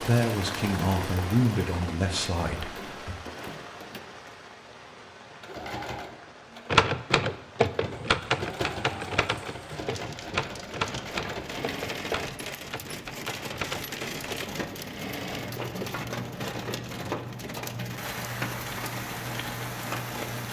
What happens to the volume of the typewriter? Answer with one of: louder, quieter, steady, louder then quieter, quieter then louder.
quieter.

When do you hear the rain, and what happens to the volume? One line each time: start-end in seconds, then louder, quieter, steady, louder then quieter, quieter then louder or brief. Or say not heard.
0.0-20.4 quieter then louder.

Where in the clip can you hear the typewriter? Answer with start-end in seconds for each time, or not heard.
6.7-14.6.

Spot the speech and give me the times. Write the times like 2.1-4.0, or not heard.
0.0-3.1.